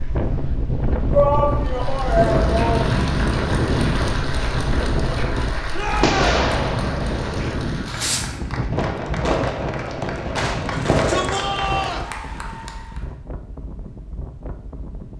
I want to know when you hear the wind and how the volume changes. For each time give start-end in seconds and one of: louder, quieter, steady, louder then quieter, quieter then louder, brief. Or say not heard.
0.0-15.1 quieter.